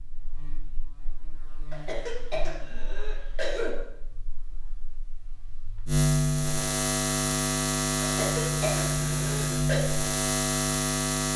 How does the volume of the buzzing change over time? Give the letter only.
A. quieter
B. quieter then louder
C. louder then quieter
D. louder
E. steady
B.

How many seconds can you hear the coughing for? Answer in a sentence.
You can hear the coughing for 4 seconds altogether.